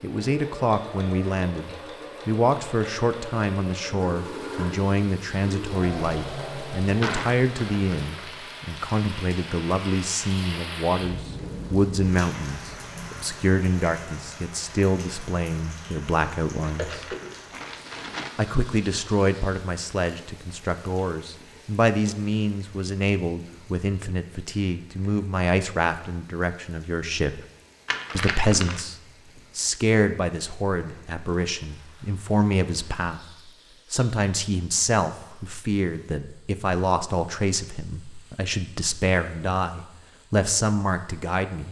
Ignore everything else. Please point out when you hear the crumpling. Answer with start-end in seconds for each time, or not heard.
7.0-8.2, 16.6-18.4, 27.9-28.9.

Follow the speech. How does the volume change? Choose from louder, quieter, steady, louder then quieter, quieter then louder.
steady.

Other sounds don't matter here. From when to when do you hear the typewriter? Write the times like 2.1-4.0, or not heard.
not heard.